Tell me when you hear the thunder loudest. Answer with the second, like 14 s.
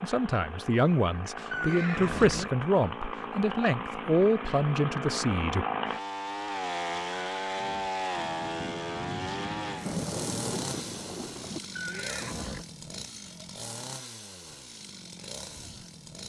10 s.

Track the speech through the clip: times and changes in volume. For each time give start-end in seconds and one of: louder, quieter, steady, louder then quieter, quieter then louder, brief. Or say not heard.
0.0-5.7 steady.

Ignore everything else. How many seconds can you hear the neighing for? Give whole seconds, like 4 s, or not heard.
3 s.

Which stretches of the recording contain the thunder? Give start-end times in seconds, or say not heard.
8.2-11.6.